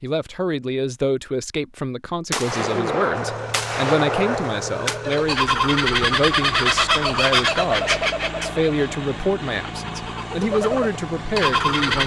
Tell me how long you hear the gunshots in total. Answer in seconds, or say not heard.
3 s.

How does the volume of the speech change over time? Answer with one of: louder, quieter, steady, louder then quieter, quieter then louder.
steady.